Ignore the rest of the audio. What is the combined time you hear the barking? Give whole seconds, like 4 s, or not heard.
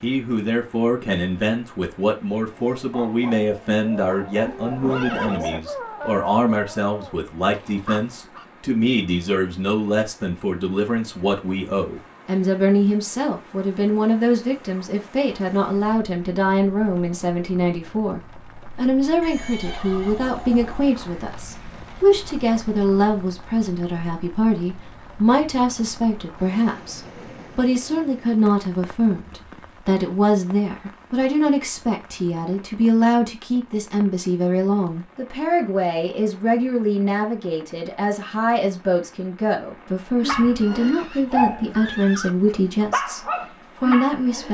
10 s.